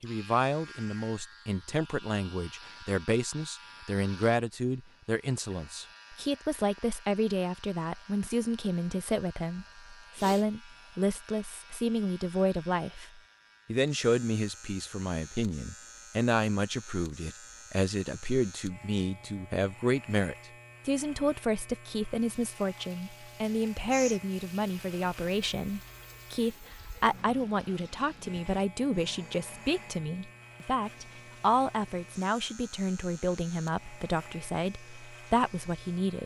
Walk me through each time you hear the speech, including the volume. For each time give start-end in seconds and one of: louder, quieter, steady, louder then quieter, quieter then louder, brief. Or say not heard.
0.0-36.2 steady.